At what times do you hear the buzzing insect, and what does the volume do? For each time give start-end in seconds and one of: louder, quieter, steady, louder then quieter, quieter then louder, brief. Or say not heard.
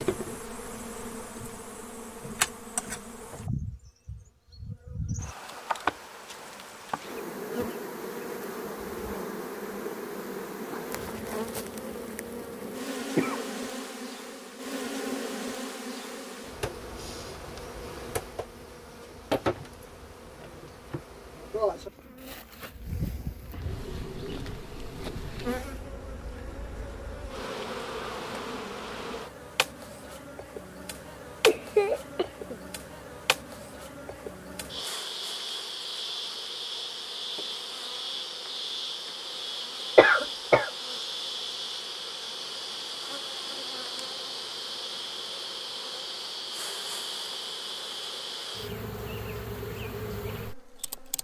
0.0-51.1 steady.